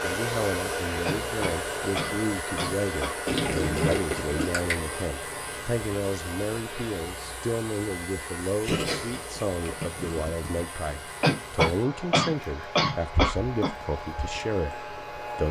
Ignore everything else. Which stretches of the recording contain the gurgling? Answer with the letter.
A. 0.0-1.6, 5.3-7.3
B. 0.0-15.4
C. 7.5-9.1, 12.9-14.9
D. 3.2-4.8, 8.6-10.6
D.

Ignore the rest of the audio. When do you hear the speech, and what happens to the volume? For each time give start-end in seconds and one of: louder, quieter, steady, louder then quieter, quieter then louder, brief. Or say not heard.
0.0-15.4 steady.